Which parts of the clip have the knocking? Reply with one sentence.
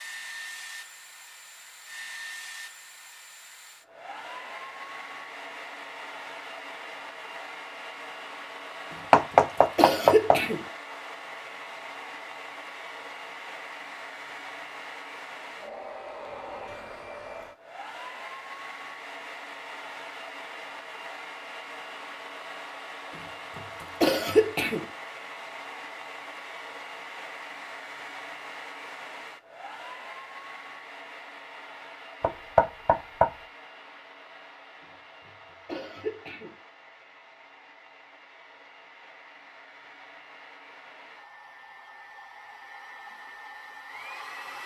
You can hear the knocking from 9.1 to 10.4 s and from 32.2 to 33.3 s.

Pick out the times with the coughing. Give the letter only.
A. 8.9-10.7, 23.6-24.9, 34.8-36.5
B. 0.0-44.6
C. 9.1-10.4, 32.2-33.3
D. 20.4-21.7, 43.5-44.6
A.